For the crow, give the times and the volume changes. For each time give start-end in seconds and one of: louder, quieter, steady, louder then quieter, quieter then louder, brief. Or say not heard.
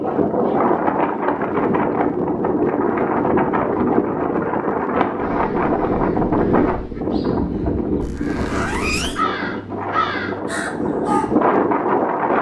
5.2-11.3 louder.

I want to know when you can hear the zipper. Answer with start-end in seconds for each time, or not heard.
8.0-9.2.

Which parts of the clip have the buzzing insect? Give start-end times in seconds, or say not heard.
not heard.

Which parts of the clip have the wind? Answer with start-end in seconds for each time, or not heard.
0.0-12.3.